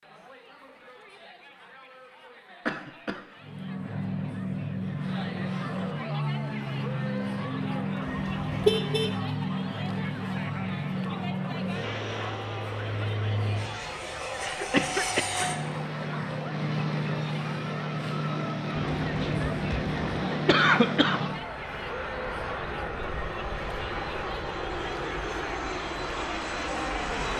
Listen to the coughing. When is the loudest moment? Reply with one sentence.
The volume of the coughing peaks at 21 seconds.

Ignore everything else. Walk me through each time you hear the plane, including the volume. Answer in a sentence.
You can hear the plane from 3.4 to 27.3 s, at a steady volume.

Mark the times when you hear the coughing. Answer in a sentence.
The coughing can be heard from 2.6 to 3.2 s, from 14.4 to 15.6 s and from 18.8 to 21.2 s.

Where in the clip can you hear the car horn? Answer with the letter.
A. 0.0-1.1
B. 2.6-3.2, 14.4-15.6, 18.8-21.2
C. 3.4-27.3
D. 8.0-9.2
D.